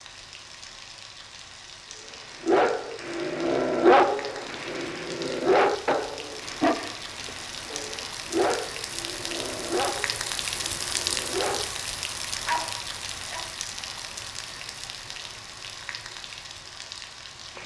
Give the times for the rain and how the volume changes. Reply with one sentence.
The rain can be heard from 0.0 to 17.6 s, getting louder then quieter.